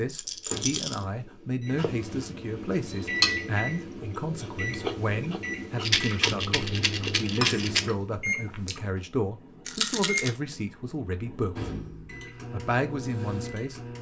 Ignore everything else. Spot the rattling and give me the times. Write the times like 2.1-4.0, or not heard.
0.1-1.0, 5.8-7.8, 9.7-10.3.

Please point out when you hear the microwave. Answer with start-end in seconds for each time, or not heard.
0.1-13.9.